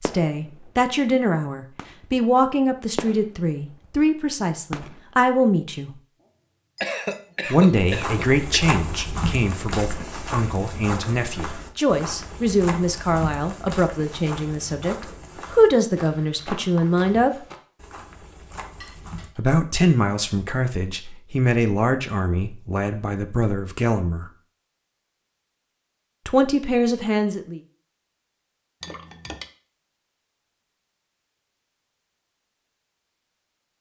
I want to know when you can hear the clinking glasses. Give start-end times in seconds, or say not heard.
6.2-7.2, 18.8-19.4, 28.8-29.5.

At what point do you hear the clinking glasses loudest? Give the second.
29 s.